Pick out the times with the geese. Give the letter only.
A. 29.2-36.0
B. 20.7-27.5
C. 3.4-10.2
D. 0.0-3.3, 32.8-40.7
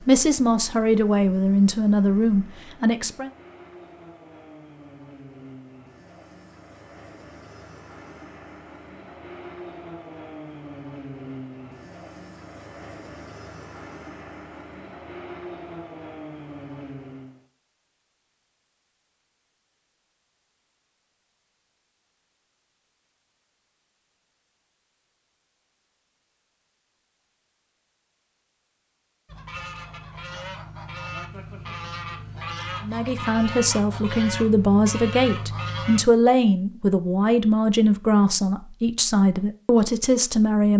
A.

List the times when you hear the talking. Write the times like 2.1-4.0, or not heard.
0.0-3.3, 32.8-40.7.